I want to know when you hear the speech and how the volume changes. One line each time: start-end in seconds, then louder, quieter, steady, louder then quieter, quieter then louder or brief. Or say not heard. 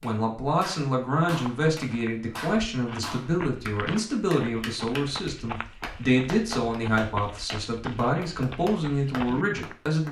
0.0-10.0 steady.